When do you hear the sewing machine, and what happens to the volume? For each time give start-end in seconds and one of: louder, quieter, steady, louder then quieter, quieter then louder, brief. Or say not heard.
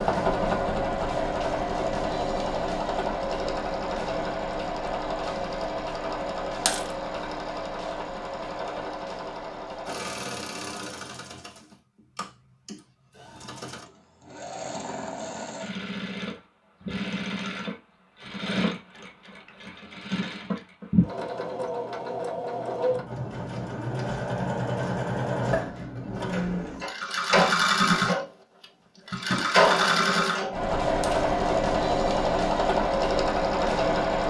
0.0-34.2 quieter then louder.